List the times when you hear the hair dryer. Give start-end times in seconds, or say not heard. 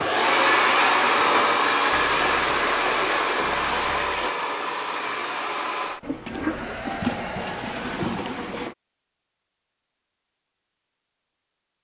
0.0-8.0.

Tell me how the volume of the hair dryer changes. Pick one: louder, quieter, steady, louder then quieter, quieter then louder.
quieter.